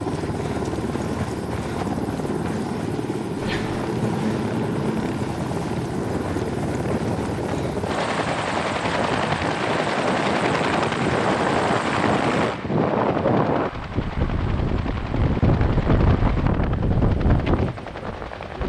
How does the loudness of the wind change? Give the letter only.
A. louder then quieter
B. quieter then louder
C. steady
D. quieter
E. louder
E.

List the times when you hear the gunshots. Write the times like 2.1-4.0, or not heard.
not heard.